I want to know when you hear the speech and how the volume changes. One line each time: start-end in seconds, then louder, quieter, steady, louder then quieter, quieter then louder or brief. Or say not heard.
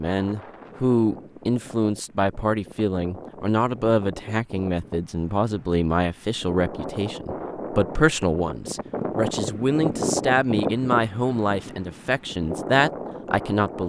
0.0-13.8 steady.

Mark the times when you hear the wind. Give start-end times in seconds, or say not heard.
0.0-13.8.